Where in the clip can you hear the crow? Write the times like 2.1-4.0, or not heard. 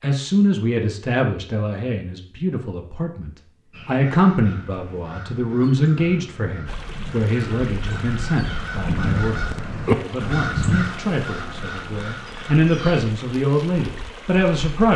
3.7-13.1.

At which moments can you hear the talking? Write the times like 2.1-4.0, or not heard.
0.0-14.9.